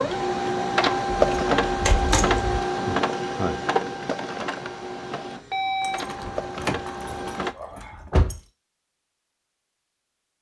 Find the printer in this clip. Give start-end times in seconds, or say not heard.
0.0-7.5.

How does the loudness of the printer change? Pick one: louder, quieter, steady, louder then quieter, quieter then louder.
quieter.